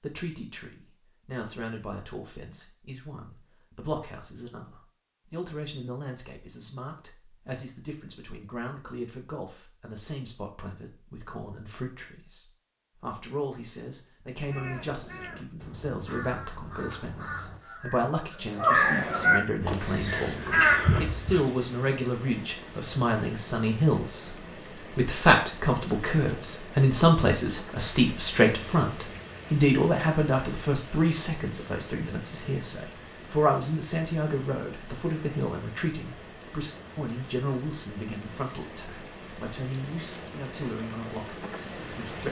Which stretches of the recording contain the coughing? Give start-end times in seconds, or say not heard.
not heard.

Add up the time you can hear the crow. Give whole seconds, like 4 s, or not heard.
7 s.